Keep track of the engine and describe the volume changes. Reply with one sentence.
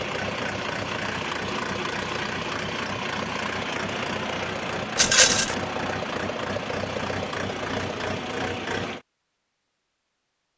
The volume of the engine stays about the same.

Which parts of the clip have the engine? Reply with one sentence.
The engine can be heard from 0.0 to 9.1 s.